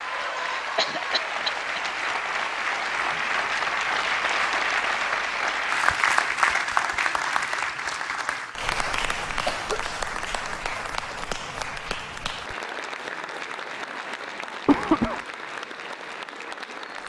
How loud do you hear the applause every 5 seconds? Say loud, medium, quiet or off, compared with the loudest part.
loud, loud, medium, medium.